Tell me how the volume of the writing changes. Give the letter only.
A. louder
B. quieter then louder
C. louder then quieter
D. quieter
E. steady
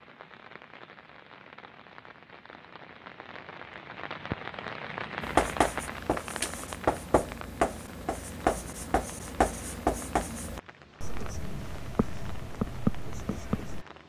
B.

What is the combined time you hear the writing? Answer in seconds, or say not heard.
9 s.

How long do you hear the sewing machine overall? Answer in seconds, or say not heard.
not heard.